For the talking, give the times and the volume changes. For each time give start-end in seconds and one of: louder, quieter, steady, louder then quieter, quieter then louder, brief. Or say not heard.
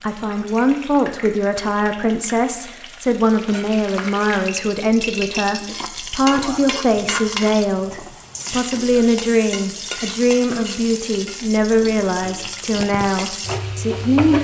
0.0-14.4 steady.